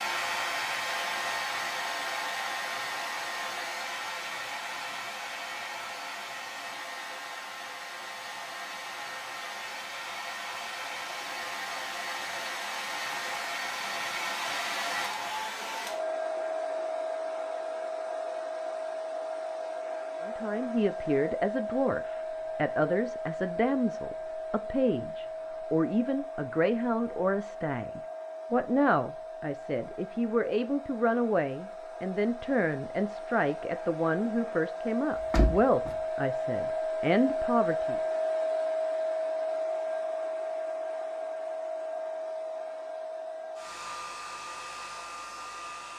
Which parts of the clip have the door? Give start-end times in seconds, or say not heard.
35.1-36.0.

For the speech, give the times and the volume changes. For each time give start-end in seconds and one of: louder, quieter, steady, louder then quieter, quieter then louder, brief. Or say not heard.
20.2-38.0 steady.